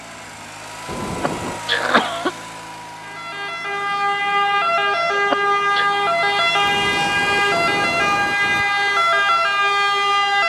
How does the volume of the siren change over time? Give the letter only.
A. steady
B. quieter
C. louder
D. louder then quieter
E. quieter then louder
A.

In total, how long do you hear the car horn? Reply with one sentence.
You can hear the car horn for 3 seconds altogether.